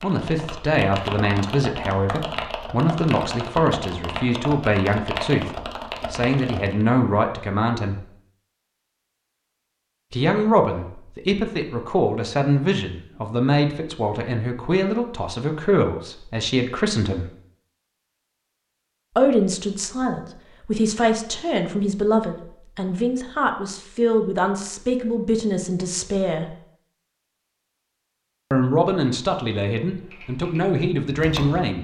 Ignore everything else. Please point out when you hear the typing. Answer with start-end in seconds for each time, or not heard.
0.0-6.8, 29.9-31.6.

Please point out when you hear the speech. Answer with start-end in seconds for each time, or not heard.
0.0-5.5, 6.1-8.1, 10.1-17.3, 19.1-26.6, 28.5-31.7.